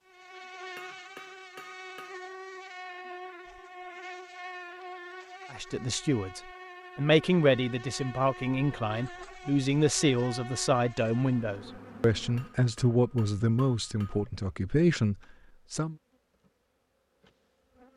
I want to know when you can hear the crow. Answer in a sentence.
You can't hear the crow here.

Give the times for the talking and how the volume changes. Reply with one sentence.
You can hear the talking from 5.5 to 15.9 s, at a steady volume.